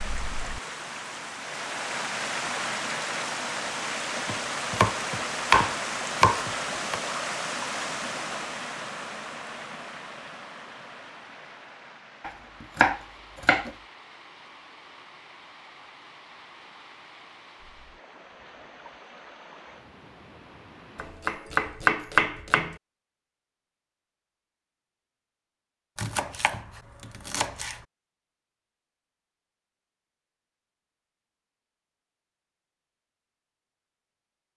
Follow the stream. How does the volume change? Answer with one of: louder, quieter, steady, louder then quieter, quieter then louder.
quieter.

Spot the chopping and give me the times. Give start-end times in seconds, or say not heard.
4.2-7.0, 12.2-13.8, 20.9-22.8, 25.9-27.8.